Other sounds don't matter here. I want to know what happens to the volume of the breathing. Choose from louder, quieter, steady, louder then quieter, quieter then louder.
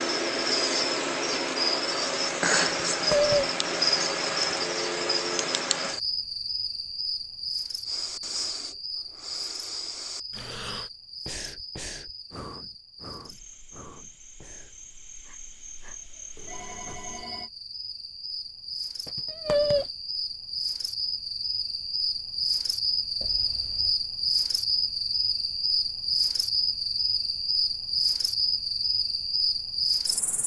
quieter.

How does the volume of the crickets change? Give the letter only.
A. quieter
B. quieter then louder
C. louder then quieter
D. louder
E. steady
B.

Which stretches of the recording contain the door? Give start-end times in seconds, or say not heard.
not heard.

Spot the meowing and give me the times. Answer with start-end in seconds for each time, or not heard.
2.9-3.5, 19.1-19.9.